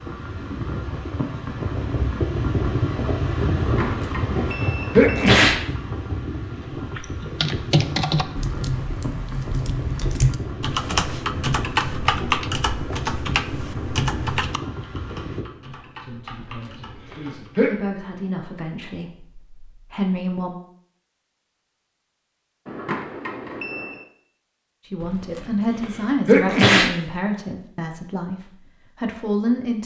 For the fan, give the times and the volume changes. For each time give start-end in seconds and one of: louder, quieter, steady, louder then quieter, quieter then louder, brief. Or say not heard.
0.0-15.4 quieter.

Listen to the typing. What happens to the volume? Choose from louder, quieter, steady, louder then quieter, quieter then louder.
quieter.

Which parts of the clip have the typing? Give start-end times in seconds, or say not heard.
6.8-17.6.